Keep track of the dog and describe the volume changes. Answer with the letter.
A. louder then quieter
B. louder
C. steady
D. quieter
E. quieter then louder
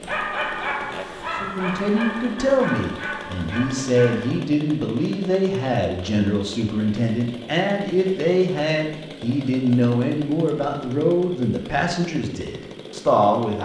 D.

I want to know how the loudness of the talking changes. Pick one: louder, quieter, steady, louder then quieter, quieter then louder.
steady.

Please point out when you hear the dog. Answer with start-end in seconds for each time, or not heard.
0.0-4.4.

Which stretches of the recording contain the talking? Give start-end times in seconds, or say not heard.
1.4-13.6.